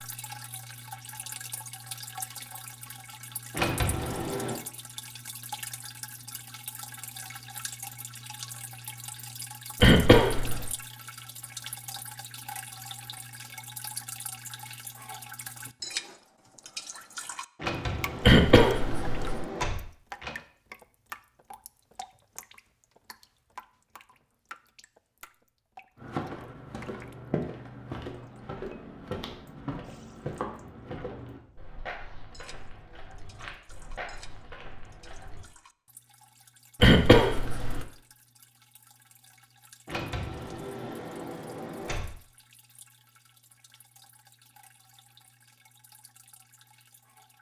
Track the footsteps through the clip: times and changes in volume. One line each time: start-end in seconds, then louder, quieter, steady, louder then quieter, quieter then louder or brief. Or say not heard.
25.9-35.5 quieter.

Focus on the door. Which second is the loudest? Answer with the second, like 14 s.
4 s.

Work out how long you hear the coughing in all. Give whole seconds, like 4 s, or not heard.
3 s.